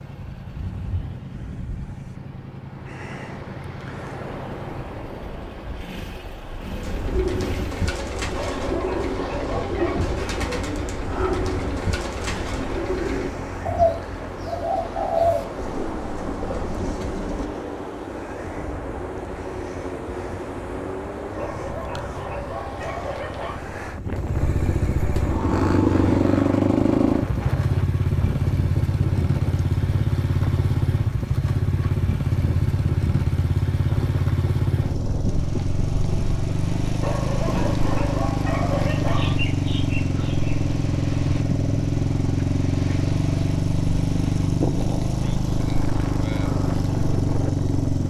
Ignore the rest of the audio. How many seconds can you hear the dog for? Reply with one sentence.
The dog can be heard for 6 seconds in total.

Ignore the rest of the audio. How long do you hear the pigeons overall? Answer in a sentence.
The pigeons can be heard for 11 seconds in total.